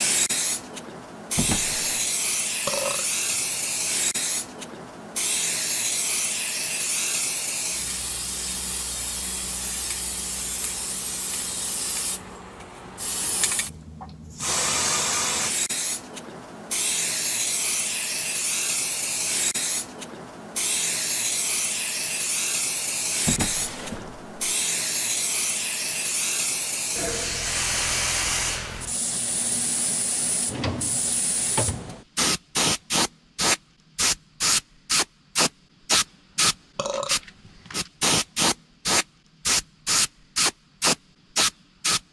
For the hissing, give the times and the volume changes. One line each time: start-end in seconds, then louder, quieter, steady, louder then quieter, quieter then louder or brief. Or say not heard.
0.0-42.0 louder.